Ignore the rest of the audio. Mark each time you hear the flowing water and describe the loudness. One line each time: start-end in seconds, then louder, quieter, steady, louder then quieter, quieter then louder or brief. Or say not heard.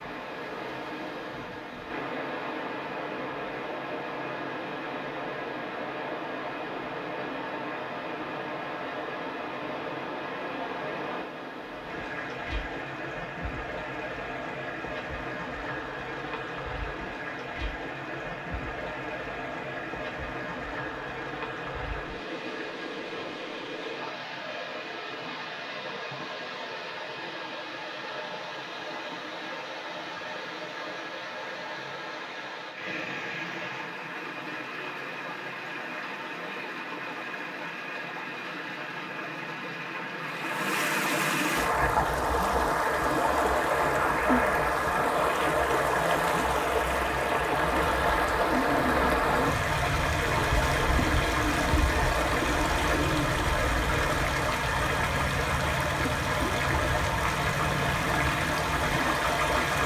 0.0-59.8 louder.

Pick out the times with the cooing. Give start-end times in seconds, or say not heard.
48.4-54.2.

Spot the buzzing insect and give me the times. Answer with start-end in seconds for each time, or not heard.
not heard.